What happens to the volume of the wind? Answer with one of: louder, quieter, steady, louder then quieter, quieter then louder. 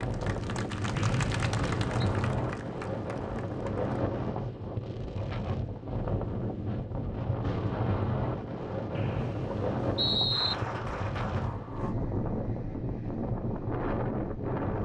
steady.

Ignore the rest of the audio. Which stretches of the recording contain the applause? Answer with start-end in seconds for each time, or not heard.
0.0-4.0, 10.3-11.9.